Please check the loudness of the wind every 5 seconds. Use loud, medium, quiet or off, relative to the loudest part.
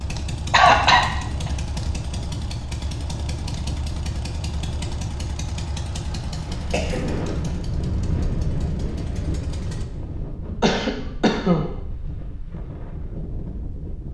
medium, loud, medium.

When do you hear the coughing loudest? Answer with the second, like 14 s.
1 s.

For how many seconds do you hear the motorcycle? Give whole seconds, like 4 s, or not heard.
10 s.